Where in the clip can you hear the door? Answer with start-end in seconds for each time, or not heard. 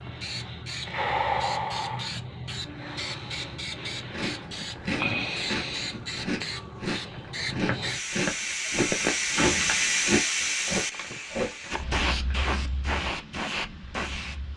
9.3-10.1.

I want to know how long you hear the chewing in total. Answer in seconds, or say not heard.
8 s.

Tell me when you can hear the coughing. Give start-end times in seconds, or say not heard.
not heard.